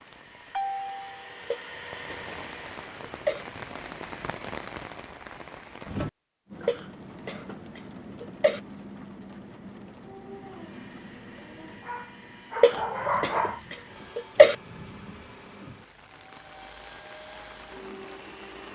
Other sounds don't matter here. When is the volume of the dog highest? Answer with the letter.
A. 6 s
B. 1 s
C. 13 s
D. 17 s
C.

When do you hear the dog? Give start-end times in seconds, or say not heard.
10.0-13.6.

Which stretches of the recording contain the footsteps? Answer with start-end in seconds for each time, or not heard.
not heard.